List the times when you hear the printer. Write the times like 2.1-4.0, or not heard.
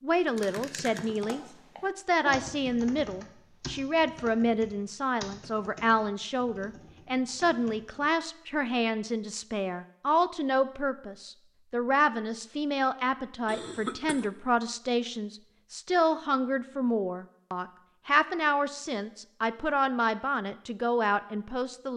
not heard.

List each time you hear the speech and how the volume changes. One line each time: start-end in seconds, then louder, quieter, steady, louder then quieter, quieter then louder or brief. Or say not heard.
0.0-21.9 steady.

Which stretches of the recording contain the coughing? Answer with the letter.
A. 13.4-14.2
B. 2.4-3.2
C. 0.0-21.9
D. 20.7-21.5
A.